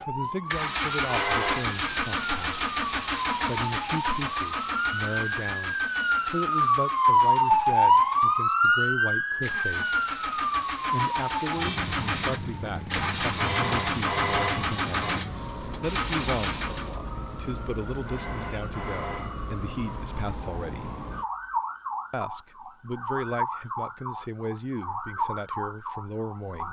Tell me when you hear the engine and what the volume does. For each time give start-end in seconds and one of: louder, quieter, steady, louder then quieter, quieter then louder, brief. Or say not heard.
0.0-17.0 quieter then louder.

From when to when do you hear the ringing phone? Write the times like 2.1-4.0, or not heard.
1.1-1.8, 13.3-15.2, 18.1-19.6.